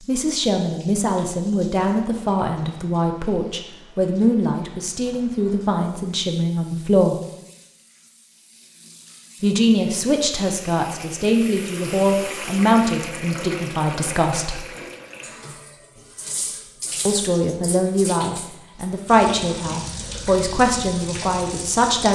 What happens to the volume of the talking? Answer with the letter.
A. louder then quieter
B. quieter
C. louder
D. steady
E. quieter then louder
D.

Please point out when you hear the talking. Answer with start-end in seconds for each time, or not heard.
0.1-7.2, 9.4-14.6, 17.1-22.1.